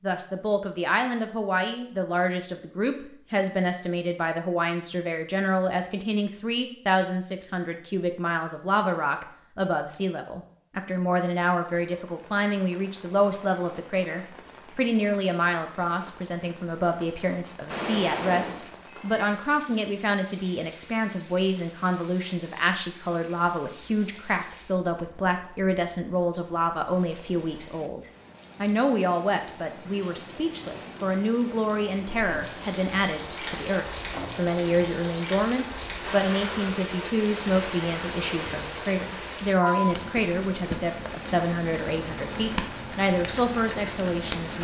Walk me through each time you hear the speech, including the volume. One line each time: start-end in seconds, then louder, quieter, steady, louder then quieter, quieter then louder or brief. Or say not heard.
0.0-44.6 steady.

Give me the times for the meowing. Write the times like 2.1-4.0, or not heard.
17.6-19.1.